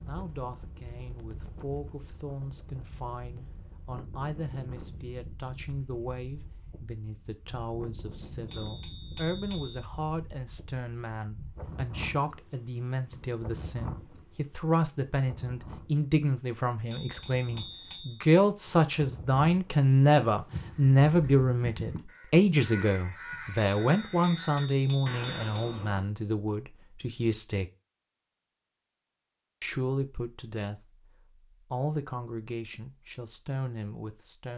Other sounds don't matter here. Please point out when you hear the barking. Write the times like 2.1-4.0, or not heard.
not heard.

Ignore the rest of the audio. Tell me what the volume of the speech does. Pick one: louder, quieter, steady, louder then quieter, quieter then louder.
louder then quieter.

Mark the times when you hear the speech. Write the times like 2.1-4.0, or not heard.
0.1-27.7, 29.6-34.5.